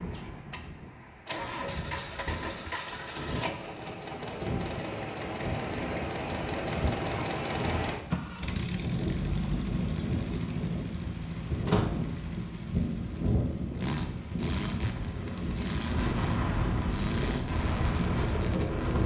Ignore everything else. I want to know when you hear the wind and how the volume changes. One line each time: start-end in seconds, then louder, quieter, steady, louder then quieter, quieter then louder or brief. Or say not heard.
0.0-19.0 louder.